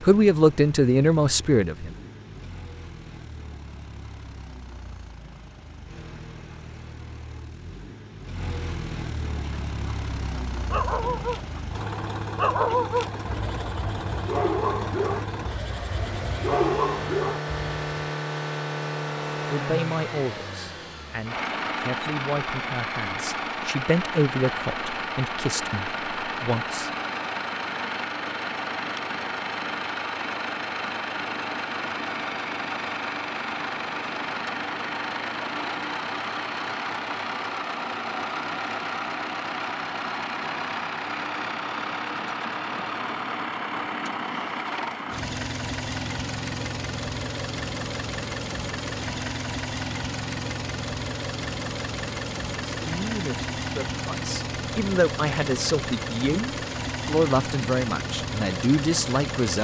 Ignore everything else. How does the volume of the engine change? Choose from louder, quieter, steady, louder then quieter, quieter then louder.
louder.